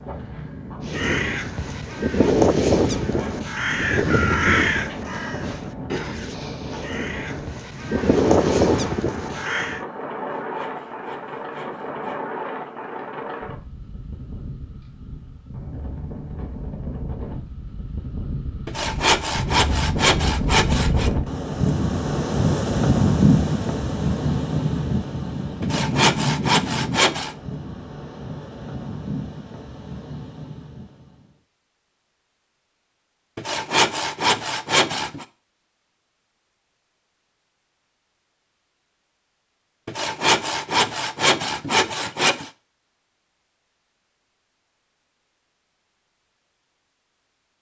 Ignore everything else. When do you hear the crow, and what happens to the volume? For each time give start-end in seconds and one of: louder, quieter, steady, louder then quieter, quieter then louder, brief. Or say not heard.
0.8-9.8 quieter then louder.